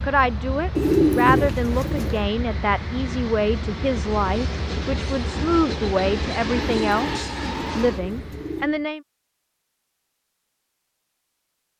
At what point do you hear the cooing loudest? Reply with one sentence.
The loudest moment of the cooing is at 1 second.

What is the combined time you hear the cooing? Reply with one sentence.
The cooing can be heard for 4 seconds in total.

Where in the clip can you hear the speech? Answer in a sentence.
You can hear the speech from 0.0 to 9.0 s.